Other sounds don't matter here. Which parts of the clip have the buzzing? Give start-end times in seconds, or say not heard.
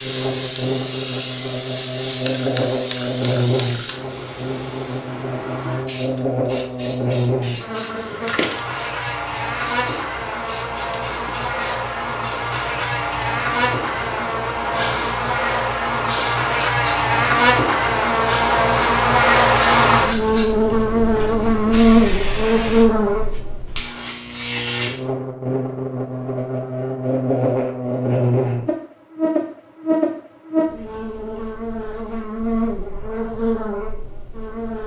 0.0-34.8.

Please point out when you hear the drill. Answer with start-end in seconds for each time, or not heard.
not heard.